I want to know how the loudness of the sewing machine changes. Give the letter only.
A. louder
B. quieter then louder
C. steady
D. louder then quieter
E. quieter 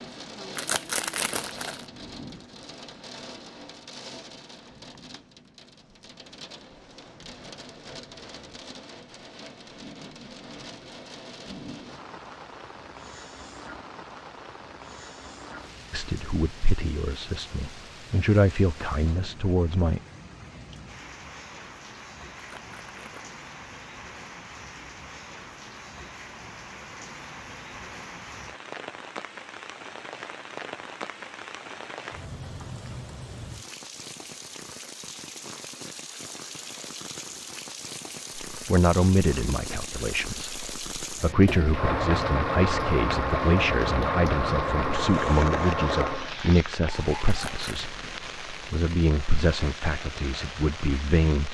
C.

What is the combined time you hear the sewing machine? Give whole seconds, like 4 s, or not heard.
5 s.